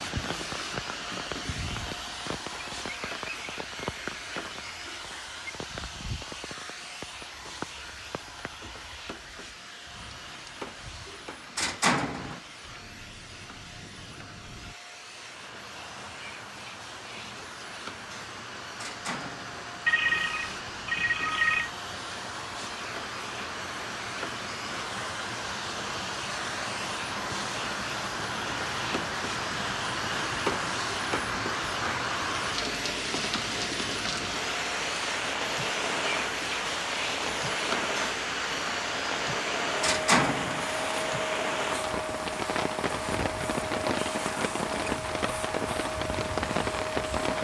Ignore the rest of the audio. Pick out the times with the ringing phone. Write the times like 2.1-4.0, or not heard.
19.9-21.7.